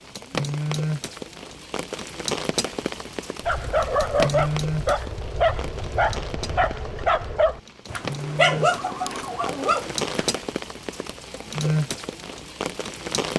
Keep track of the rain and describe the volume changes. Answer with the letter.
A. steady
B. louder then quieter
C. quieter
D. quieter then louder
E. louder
D.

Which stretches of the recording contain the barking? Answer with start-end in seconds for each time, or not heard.
3.4-10.3.